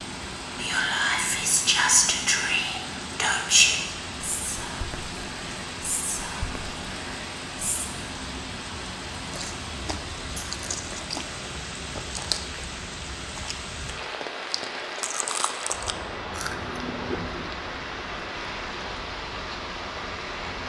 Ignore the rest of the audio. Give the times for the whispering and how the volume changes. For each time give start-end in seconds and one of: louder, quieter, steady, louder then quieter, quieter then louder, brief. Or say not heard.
0.6-7.8 quieter.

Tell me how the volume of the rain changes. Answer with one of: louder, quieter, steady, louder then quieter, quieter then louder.
steady.